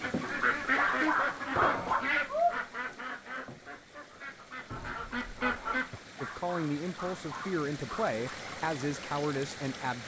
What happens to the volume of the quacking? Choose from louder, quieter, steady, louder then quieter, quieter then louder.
quieter then louder.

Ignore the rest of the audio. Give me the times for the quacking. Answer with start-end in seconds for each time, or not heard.
0.0-6.0.